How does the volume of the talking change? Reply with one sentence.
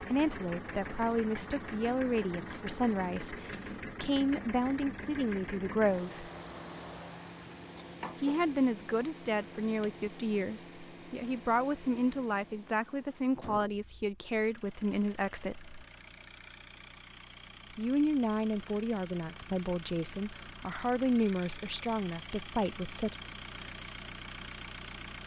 The volume of the talking stays about the same.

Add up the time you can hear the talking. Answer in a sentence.
You can hear the talking for 19 seconds altogether.